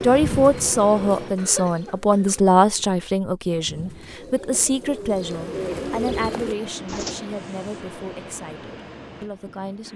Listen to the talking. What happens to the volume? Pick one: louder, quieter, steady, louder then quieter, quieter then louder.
quieter.